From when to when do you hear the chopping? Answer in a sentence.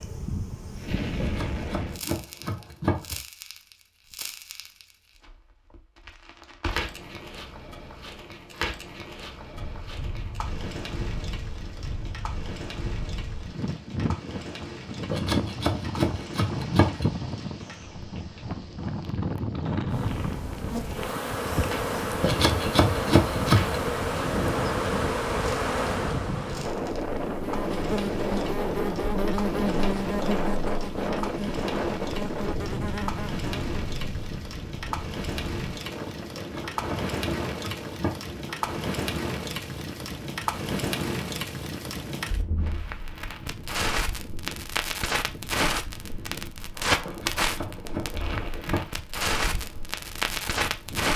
You can hear the chopping from 1.2 to 3.2 s, from 15.1 to 17.1 s, from 22.2 to 23.8 s, from 36.4 to 38.4 s and from 47.0 to 49.0 s.